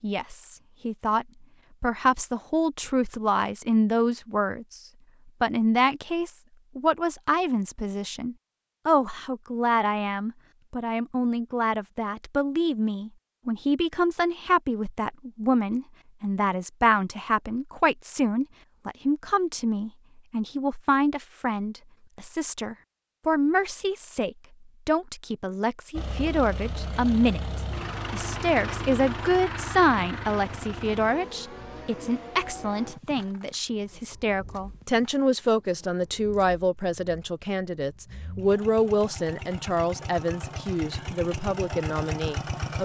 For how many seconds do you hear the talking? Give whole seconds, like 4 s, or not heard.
42 s.